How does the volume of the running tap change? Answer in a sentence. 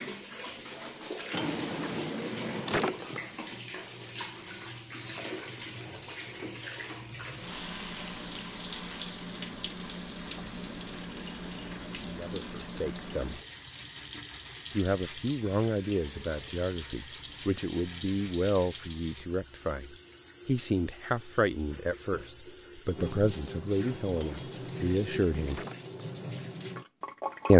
The volume of the running tap stays about the same.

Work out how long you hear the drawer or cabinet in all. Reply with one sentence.
You can hear the drawer or cabinet for 4 seconds altogether.